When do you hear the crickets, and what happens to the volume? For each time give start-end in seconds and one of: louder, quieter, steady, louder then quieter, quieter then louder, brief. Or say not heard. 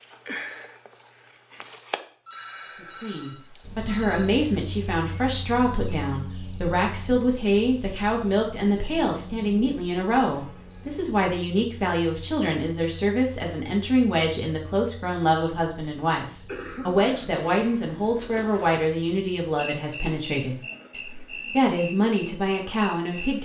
0.0-23.3 quieter.